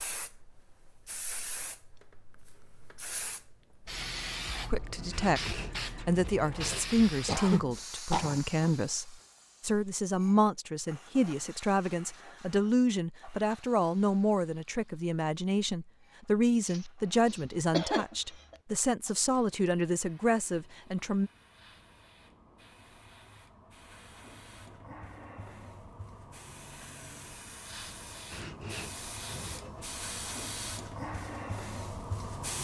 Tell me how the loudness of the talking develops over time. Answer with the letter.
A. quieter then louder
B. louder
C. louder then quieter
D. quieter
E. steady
E.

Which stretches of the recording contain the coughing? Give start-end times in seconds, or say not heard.
7.2-8.7, 16.6-18.6.